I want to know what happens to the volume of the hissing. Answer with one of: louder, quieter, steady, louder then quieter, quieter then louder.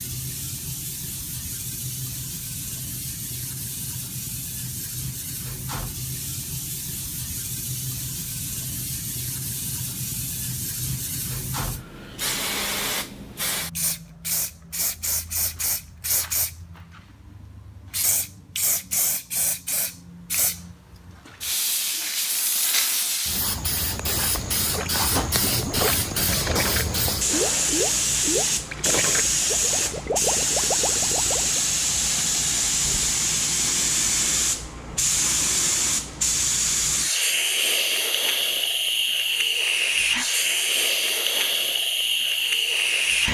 louder.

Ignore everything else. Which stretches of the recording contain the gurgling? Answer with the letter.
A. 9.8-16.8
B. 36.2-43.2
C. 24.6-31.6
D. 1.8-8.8
C.